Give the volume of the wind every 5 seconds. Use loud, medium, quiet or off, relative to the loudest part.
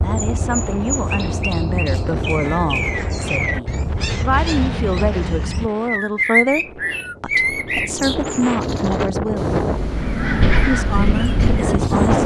quiet, medium, loud.